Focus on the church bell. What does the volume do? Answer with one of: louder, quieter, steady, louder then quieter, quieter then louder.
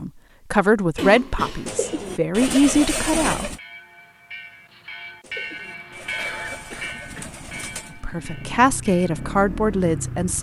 louder then quieter.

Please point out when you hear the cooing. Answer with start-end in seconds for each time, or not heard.
1.6-3.6, 5.2-8.0.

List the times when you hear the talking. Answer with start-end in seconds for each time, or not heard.
0.0-3.5, 8.0-10.3.